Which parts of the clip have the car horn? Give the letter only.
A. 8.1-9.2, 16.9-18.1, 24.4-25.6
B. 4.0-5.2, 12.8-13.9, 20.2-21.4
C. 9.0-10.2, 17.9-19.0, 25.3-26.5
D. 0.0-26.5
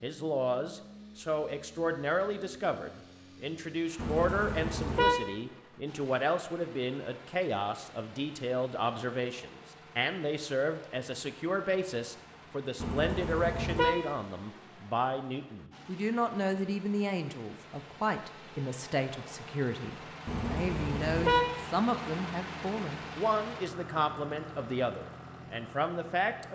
B.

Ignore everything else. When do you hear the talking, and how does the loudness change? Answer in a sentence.
You can hear the talking from 0.0 to 26.5 s, at a steady volume.